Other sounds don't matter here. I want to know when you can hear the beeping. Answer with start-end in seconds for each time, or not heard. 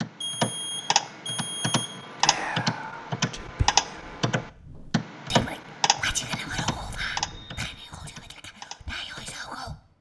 0.2-1.9, 6.5-8.3.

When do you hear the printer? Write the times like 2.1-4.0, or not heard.
not heard.